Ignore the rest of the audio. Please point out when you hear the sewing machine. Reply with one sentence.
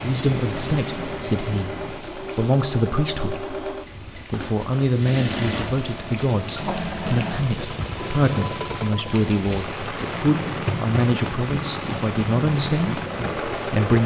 The sewing machine can be heard from 0.2 to 14.0 s.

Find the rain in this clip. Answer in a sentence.
The rain can be heard from 0.0 to 14.0 s.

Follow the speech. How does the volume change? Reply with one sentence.
The loudness of the speech stays about the same.